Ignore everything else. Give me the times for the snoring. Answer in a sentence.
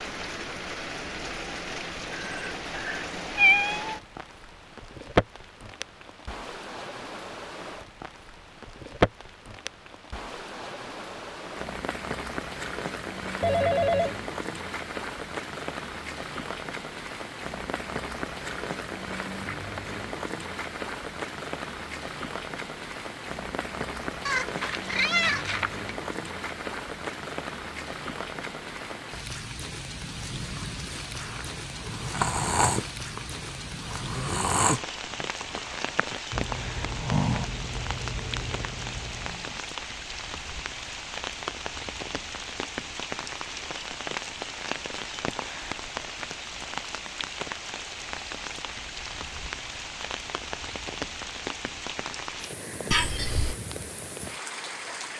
The snoring can be heard from 31.1 to 39.6 s.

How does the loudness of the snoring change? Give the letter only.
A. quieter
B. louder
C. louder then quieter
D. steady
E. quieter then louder
A.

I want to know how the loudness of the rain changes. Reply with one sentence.
The loudness of the rain stays about the same.